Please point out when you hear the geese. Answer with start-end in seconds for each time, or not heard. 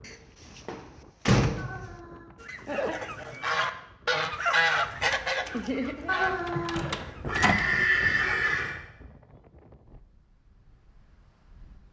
2.4-8.3.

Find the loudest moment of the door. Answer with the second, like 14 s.
1 s.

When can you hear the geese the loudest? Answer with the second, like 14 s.
5 s.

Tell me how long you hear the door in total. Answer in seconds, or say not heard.
3 s.